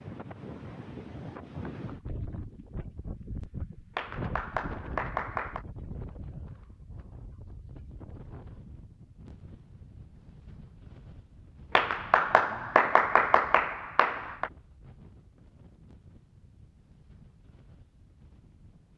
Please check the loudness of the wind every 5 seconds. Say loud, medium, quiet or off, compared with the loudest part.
loud, medium, quiet, quiet.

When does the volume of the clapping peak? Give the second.
13 s.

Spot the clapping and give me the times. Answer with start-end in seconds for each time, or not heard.
4.0-5.7, 11.8-14.5.